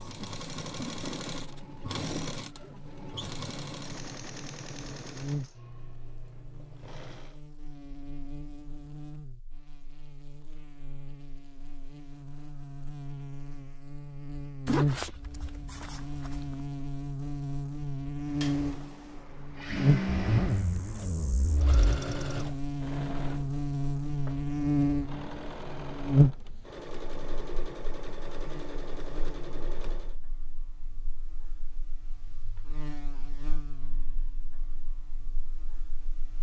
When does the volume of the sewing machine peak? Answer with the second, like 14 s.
20 s.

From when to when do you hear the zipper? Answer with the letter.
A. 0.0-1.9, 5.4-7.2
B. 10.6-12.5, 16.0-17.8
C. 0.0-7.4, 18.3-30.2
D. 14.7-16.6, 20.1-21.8
D.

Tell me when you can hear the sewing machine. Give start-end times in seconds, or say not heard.
0.0-7.4, 18.3-30.2.